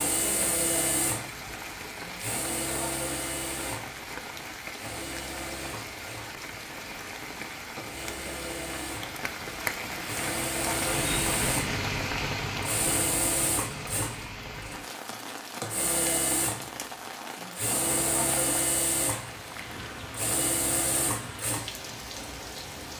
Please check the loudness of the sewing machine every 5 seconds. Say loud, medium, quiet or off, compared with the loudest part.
loud, medium, loud, loud, loud.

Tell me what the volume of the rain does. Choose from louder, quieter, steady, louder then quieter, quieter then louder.
louder then quieter.